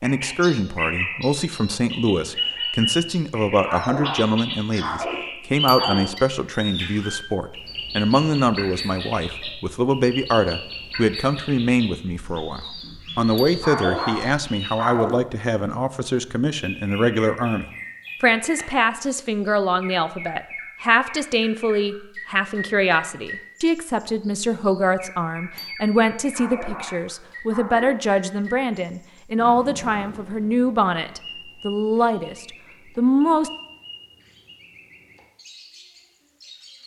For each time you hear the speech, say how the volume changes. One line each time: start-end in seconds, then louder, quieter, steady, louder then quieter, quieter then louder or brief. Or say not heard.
0.0-33.5 steady.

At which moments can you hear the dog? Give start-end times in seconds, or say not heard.
3.6-6.2, 13.6-15.3, 26.3-28.0.